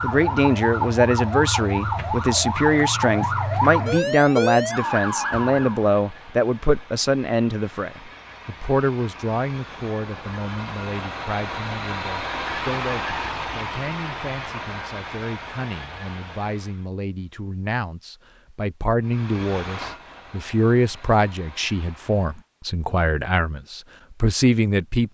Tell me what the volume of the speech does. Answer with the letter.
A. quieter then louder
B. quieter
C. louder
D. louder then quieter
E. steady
A.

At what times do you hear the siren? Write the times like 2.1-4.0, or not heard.
0.0-5.8.